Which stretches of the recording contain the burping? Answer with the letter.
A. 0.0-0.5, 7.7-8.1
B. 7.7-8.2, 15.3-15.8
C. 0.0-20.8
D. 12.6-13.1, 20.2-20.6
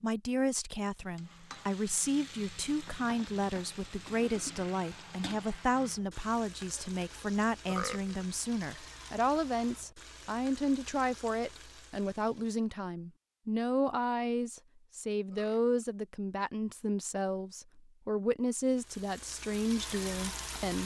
B.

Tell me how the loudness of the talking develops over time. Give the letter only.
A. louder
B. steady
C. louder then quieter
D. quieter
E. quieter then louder
B.